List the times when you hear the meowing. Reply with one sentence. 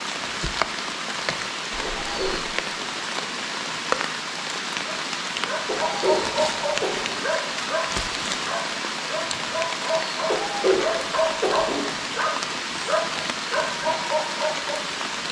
The meowing can be heard from 1.7 to 2.5 s.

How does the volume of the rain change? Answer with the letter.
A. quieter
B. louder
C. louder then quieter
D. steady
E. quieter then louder
D.